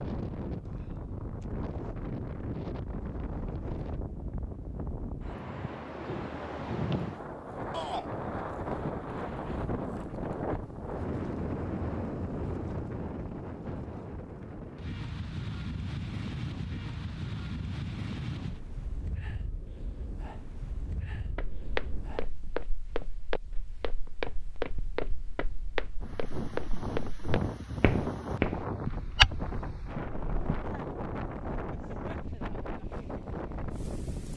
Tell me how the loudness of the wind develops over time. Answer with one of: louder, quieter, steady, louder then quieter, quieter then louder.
quieter then louder.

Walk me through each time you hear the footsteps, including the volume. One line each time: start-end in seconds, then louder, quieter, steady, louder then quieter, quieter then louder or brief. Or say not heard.
21.2-30.5 louder.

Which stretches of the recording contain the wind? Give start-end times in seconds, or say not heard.
0.0-34.3.